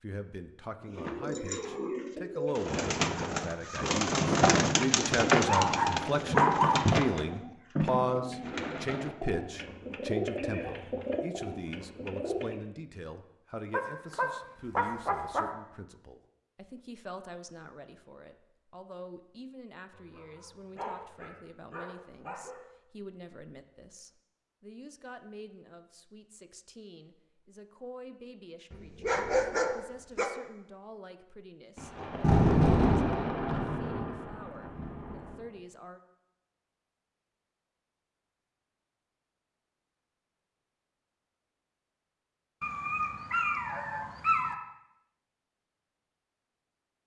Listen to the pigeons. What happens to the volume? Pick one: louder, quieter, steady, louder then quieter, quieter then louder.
louder then quieter.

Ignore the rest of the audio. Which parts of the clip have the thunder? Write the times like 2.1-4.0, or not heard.
31.8-35.4.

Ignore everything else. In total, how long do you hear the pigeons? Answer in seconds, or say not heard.
12 s.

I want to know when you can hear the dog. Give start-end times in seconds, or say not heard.
5.5-6.8, 13.7-15.5, 19.9-22.6, 28.7-30.3, 42.6-44.5.